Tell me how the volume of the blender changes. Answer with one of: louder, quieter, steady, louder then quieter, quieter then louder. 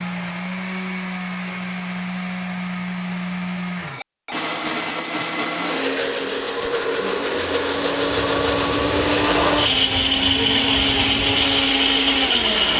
louder.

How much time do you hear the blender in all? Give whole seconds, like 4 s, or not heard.
13 s.